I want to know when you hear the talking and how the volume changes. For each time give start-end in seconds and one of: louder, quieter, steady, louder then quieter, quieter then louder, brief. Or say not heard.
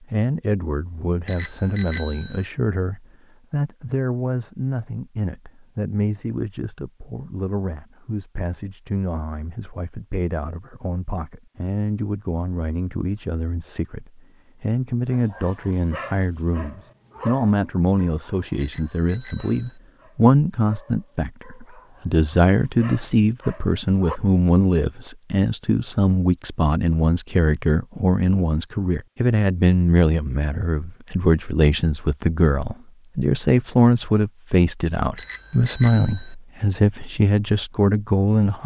0.0-38.6 louder.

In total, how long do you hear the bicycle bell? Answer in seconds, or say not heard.
4 s.